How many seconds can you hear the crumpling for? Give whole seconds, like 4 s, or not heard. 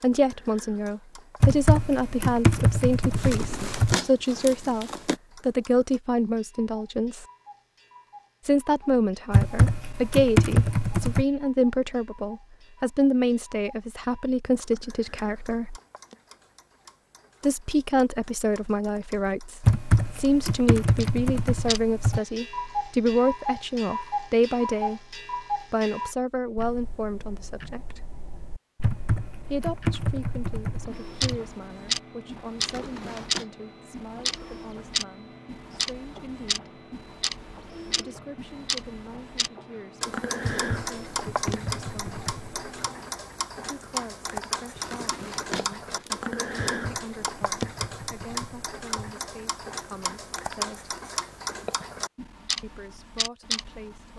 4 s.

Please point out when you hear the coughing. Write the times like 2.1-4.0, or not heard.
not heard.